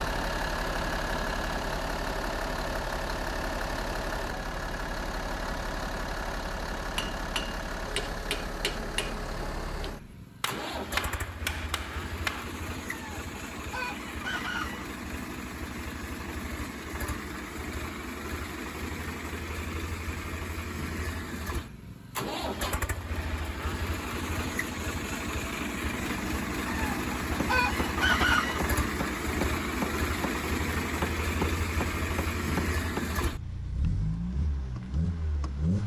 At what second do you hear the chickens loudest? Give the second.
28 s.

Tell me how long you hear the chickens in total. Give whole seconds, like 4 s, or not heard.
4 s.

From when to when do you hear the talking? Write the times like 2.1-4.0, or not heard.
not heard.